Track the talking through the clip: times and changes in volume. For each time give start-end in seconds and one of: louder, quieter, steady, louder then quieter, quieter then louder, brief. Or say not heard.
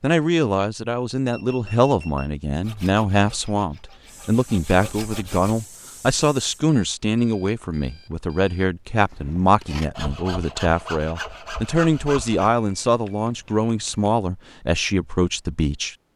0.0-15.9 steady.